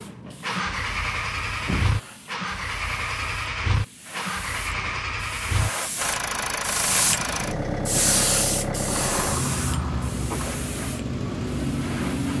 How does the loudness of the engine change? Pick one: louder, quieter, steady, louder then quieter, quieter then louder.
steady.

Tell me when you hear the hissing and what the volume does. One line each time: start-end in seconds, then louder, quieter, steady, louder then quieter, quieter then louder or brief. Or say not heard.
0.0-12.3 louder then quieter.